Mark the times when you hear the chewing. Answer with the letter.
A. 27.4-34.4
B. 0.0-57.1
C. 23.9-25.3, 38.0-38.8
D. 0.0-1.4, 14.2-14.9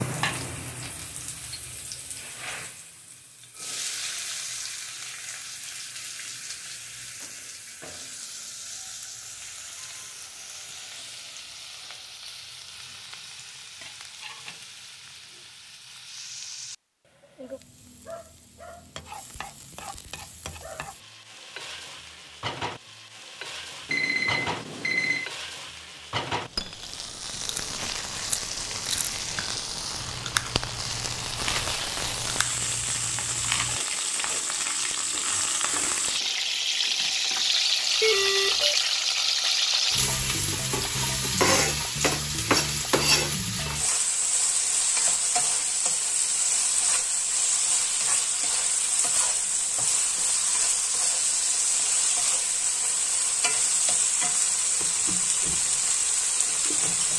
A.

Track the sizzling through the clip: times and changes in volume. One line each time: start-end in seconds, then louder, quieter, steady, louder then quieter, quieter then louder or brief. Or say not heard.
0.0-57.1 louder.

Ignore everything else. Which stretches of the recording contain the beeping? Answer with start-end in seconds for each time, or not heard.
23.9-25.3, 38.0-38.8.